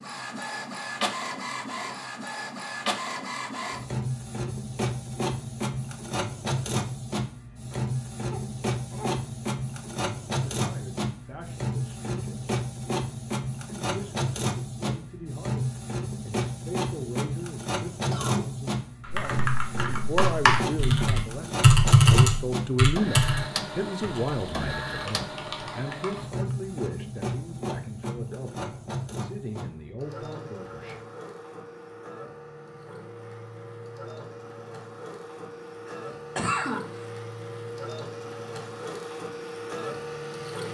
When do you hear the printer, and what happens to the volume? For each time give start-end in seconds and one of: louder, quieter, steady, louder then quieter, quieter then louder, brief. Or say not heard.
0.0-40.6 quieter.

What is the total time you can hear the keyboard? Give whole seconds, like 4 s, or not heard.
7 s.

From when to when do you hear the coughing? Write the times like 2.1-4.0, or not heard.
7.7-9.1, 18.1-18.5, 35.9-37.0.